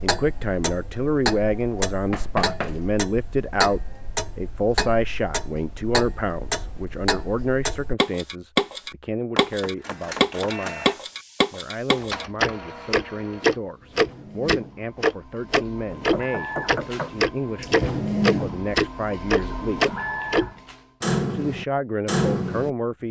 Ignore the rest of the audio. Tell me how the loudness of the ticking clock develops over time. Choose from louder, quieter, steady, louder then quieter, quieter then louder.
louder.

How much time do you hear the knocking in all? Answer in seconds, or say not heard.
3 s.